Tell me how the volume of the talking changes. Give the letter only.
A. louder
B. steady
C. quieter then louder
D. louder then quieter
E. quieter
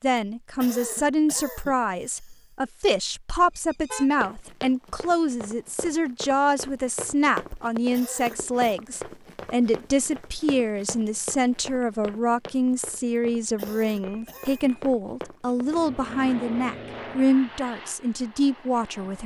B.